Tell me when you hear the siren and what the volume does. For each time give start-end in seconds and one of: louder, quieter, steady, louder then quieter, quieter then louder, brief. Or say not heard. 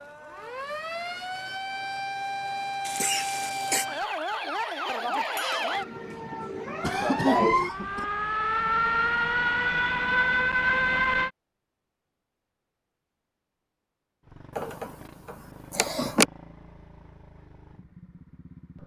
0.0-11.3 louder.